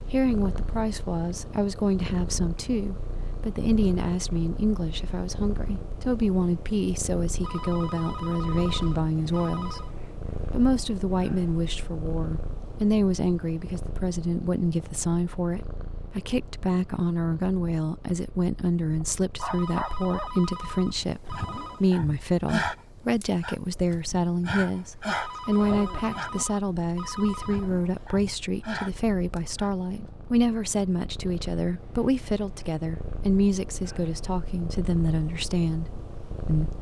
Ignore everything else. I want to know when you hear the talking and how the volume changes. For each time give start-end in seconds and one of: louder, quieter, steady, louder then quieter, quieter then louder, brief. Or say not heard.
0.1-9.8 steady
10.4-36.7 steady.